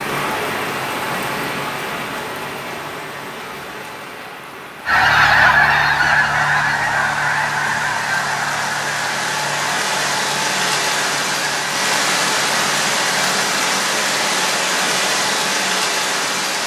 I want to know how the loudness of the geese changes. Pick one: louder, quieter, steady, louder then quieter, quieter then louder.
quieter.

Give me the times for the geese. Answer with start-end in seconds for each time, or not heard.
4.8-13.3.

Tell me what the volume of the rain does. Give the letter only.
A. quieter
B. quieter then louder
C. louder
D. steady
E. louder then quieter
B.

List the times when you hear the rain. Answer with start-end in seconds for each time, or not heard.
0.0-16.6.